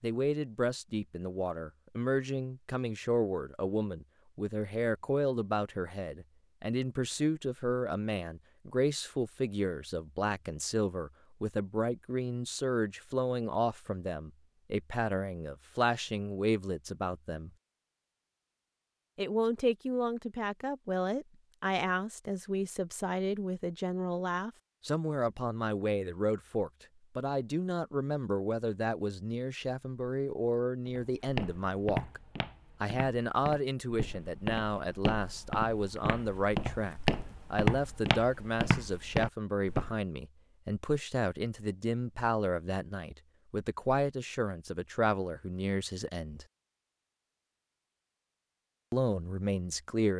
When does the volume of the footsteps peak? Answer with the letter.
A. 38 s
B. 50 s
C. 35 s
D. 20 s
A.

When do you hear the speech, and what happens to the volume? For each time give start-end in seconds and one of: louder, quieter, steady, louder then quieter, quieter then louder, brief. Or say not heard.
0.0-17.5 steady
19.1-32.2 steady
32.8-46.5 steady
48.9-50.1 brief.